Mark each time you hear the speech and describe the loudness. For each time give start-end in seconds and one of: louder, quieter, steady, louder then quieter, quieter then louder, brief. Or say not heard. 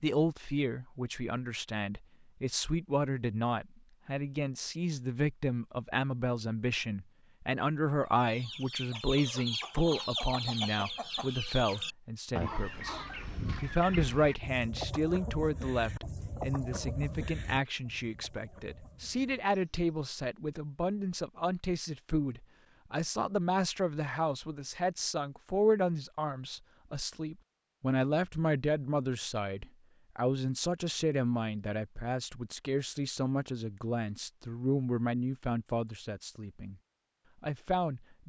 0.0-36.8 steady
37.4-38.2 brief.